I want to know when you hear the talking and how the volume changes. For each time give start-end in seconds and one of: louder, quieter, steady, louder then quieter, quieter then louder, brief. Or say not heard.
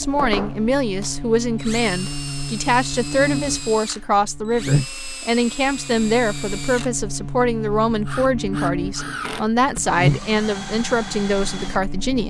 0.0-12.2 steady.